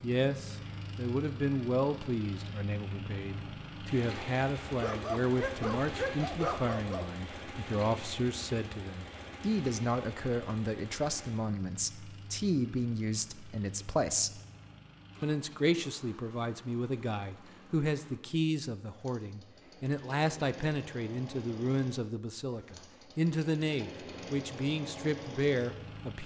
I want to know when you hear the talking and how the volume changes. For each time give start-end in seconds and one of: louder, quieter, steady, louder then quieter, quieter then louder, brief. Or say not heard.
0.0-14.4 steady
15.2-26.2 steady.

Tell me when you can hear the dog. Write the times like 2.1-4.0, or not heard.
4.8-7.1.